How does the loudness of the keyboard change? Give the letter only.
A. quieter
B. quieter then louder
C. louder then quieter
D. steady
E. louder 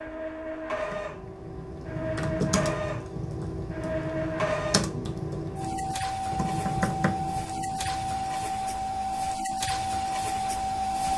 D.